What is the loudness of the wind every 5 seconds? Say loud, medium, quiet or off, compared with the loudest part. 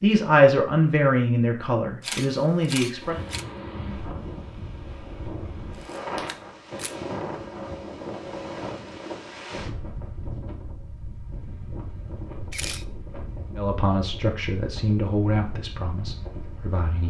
loud, loud, medium, medium.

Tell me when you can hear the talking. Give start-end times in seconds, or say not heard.
0.0-3.2, 13.6-17.0.